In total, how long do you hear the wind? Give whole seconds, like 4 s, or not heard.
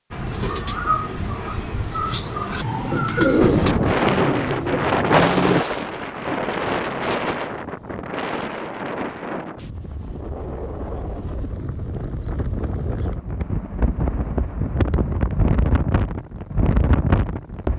14 s.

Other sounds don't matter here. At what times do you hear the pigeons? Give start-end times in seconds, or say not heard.
0.1-5.7.